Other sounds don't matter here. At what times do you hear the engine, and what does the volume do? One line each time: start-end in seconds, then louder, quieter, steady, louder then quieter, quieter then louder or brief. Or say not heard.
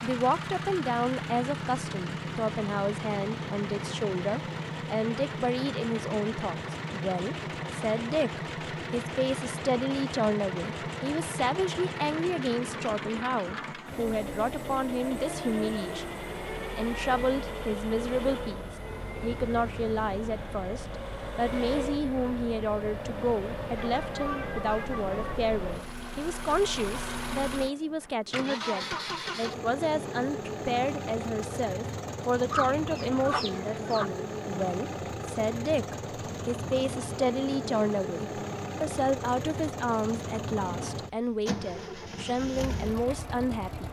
0.0-43.8 steady.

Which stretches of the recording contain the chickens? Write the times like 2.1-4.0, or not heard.
32.5-34.1.